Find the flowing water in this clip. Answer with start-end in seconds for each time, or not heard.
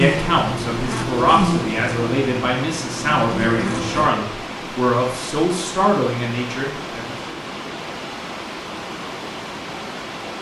0.0-10.3.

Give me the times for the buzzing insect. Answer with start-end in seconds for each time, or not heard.
0.0-4.1.